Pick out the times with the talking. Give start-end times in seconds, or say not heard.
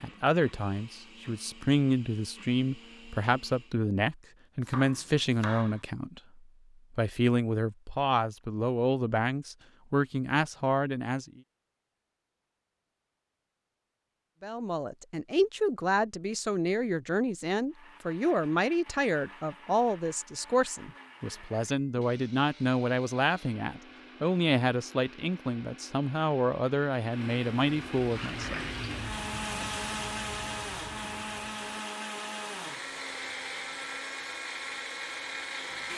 0.0-11.4, 14.4-28.6.